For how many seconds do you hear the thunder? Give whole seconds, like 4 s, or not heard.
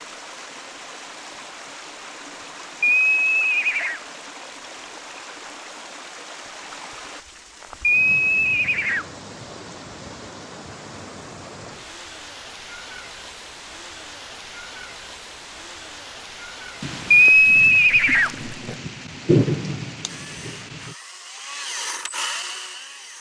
4 s.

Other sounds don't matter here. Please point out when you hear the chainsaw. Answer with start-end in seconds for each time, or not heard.
20.1-23.1.